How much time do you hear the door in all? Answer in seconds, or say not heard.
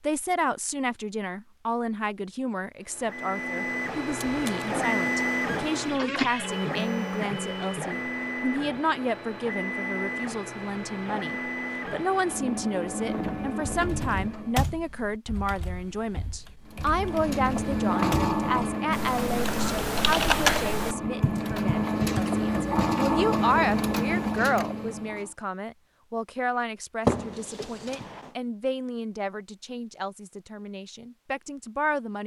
2 s.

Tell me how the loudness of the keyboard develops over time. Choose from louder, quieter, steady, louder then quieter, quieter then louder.
quieter then louder.